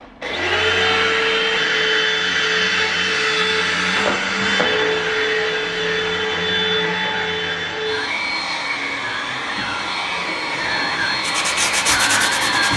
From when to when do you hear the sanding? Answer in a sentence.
You can hear the sanding from 11.2 to 12.7 s.